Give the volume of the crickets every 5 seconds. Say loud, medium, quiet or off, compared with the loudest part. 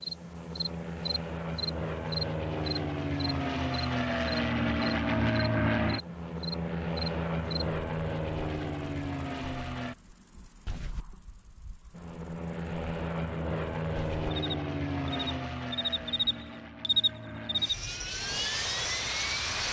loud, medium, quiet, loud.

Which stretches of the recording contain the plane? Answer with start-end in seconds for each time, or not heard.
0.0-9.9, 11.9-19.6.